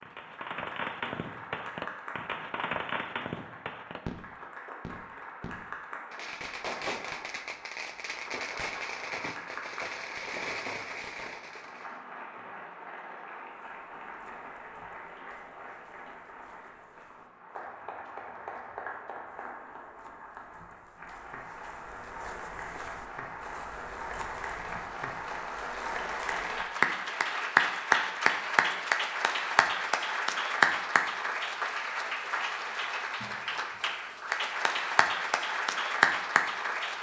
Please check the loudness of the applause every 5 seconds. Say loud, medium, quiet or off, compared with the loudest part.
quiet, quiet, quiet, quiet, quiet, loud, loud, loud.